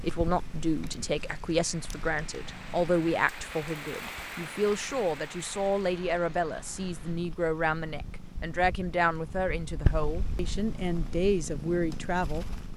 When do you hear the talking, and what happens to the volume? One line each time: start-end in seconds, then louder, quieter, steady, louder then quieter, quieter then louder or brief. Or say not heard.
0.0-12.4 steady.